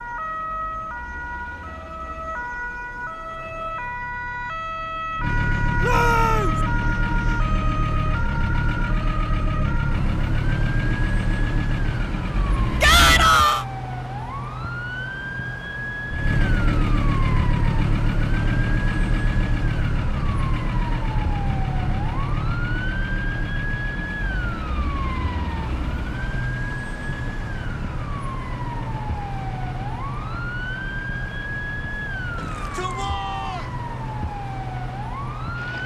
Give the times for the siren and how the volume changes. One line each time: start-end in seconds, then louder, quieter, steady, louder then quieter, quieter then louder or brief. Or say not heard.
0.0-35.8 steady.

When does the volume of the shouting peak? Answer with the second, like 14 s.
13 s.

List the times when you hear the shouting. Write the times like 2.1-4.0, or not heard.
5.8-6.5, 12.8-13.7, 32.4-33.7.